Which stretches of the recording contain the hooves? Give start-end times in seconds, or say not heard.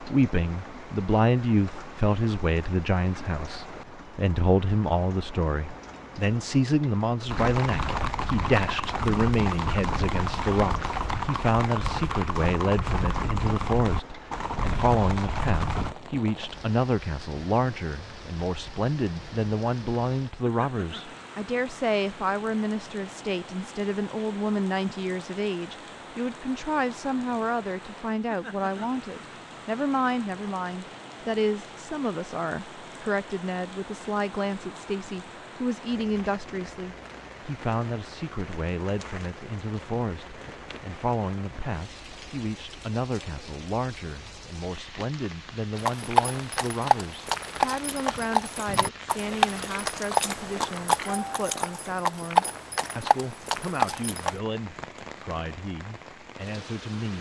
7.2-15.9, 45.8-54.4.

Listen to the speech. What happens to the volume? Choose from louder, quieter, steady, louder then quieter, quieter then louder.
quieter.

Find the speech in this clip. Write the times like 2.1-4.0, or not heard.
0.0-57.1.